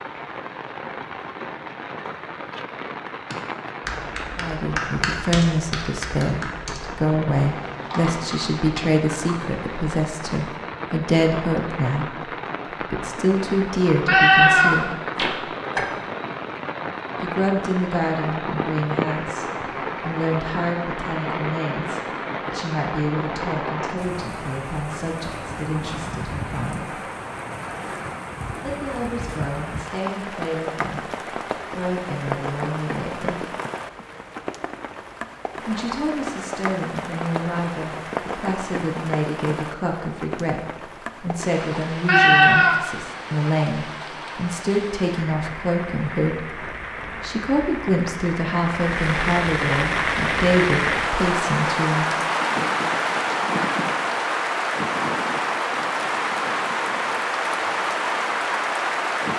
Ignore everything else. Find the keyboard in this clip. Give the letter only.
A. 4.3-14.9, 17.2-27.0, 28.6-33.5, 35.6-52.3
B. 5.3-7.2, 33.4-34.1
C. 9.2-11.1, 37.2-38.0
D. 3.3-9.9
D.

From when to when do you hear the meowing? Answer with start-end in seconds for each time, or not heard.
14.1-15.8, 42.0-42.8.